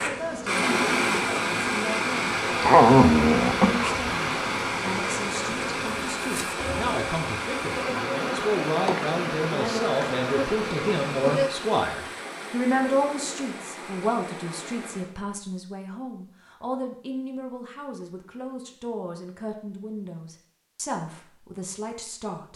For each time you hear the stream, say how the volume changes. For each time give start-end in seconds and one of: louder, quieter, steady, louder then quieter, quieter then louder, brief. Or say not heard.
0.0-15.2 quieter.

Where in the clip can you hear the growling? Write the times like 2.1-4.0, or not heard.
2.6-4.1.